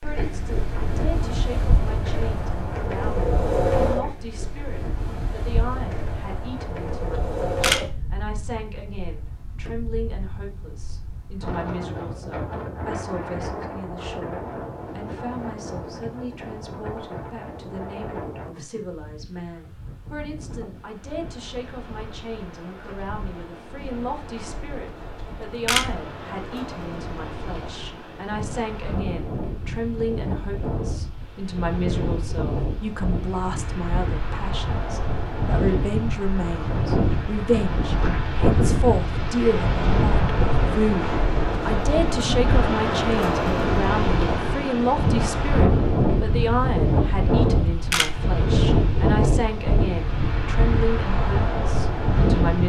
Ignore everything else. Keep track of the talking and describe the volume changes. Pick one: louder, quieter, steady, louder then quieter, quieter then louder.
louder.